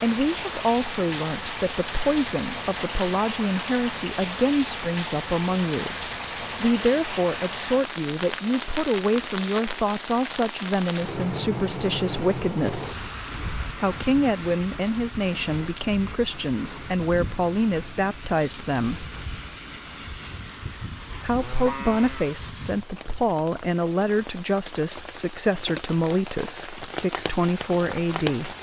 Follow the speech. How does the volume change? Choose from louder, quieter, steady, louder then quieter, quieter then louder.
steady.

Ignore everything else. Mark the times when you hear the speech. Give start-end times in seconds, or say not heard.
0.0-13.1, 13.7-19.1, 21.1-28.5.